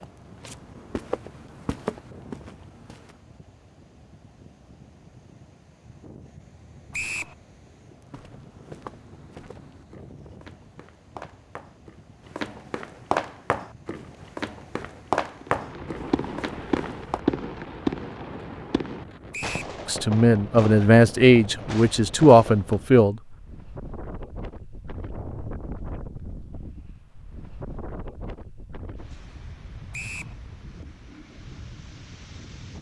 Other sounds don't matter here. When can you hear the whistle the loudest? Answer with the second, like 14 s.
7 s.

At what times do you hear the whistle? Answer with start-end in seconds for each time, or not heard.
6.9-7.3, 19.3-19.8, 29.9-30.4.